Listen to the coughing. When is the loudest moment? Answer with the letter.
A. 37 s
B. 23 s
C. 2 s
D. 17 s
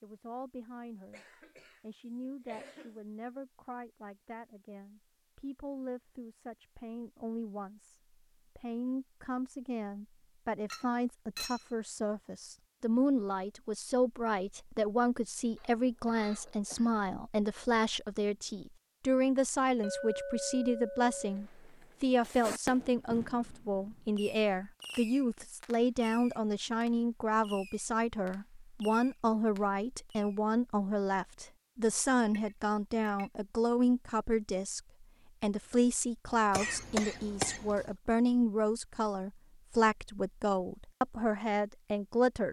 A.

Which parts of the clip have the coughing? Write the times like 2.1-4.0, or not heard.
1.1-3.0, 15.6-16.9, 36.5-37.9.